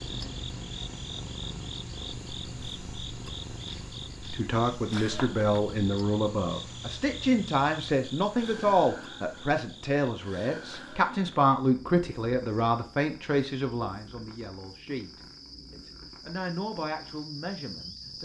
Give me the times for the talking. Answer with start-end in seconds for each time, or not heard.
4.3-15.1, 15.7-18.2.